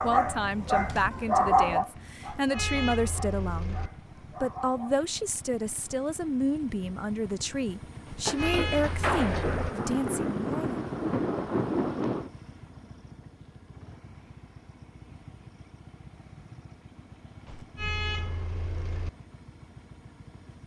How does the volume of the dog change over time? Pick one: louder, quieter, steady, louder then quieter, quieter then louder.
louder then quieter.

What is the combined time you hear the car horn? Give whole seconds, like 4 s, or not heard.
5 s.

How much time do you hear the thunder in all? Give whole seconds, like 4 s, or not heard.
4 s.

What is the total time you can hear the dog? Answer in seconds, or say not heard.
5 s.